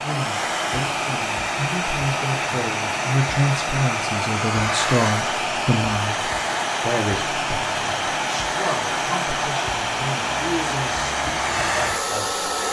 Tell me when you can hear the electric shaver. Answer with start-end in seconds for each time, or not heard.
not heard.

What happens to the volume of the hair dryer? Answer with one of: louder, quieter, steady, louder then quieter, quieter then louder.
steady.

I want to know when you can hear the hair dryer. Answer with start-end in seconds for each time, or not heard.
0.0-12.6.